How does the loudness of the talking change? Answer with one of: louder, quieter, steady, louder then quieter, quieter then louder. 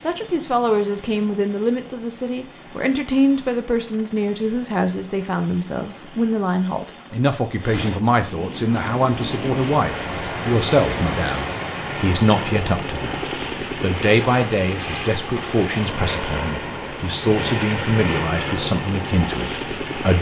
steady.